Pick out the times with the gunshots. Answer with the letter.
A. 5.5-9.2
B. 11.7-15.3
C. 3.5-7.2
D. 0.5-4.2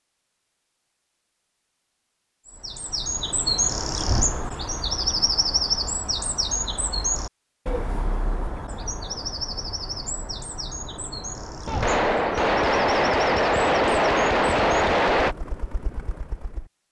B.